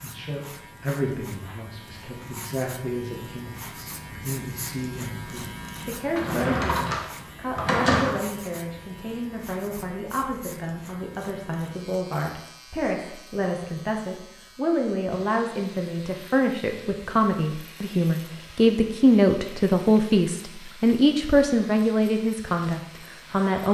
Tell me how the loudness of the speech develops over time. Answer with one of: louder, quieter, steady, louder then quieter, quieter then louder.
louder.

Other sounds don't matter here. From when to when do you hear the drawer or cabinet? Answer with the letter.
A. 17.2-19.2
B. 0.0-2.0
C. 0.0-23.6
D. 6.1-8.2
D.